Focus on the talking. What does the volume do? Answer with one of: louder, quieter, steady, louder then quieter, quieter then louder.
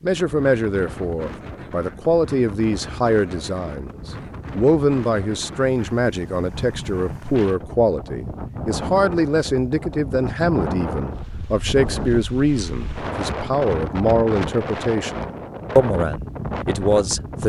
steady.